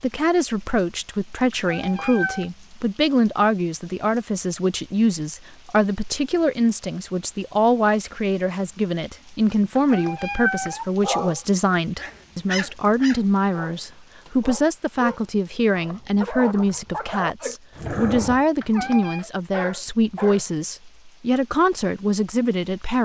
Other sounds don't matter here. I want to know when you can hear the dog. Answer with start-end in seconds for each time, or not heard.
11.0-20.4.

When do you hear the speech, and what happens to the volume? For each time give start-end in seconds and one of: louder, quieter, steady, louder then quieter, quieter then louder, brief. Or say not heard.
0.0-23.0 steady.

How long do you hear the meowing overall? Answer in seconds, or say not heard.
3 s.